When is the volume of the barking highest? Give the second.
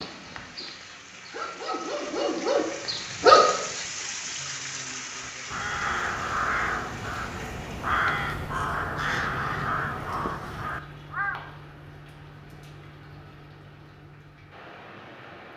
3 s.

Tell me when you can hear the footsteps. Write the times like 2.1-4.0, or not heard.
not heard.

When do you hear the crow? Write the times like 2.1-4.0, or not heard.
5.1-11.4.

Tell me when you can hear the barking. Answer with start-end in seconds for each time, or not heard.
0.0-3.6.